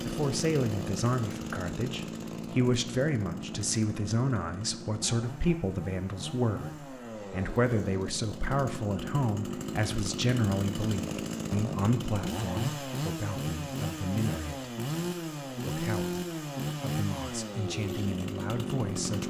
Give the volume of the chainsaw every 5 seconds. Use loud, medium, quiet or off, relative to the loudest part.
loud, medium, loud, loud.